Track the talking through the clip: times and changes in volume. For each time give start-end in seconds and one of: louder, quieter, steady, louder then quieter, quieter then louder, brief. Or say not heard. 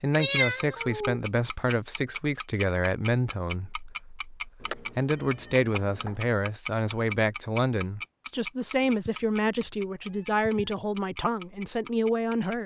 0.0-12.6 steady.